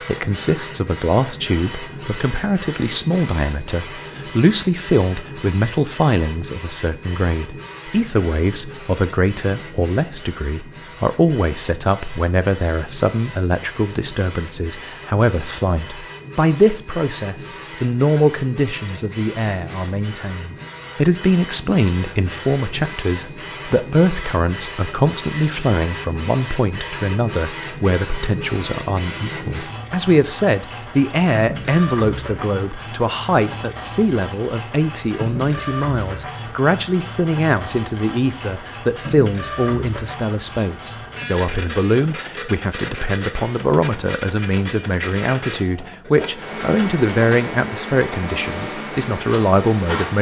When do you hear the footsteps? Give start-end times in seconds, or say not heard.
not heard.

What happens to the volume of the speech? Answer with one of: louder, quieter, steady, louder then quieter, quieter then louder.
steady.